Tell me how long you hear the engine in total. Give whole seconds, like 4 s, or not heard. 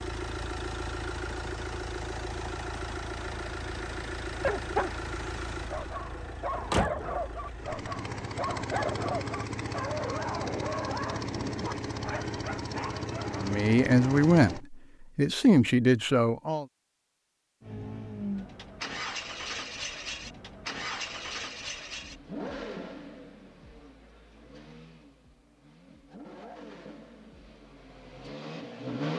26 s.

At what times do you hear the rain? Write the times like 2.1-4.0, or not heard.
not heard.